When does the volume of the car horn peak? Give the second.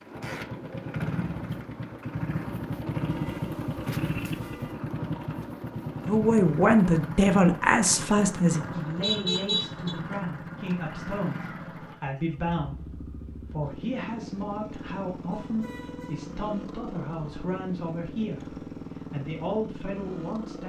9 s.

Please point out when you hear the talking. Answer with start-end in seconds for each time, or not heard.
6.0-20.6.